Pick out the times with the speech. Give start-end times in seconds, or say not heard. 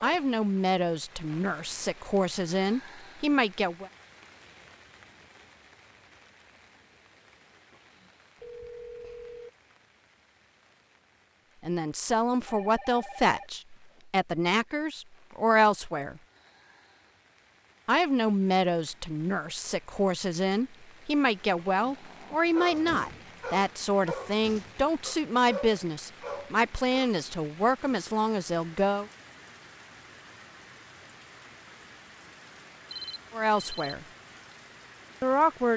0.0-3.9, 11.6-16.2, 17.9-29.1, 33.3-34.0, 35.2-35.7.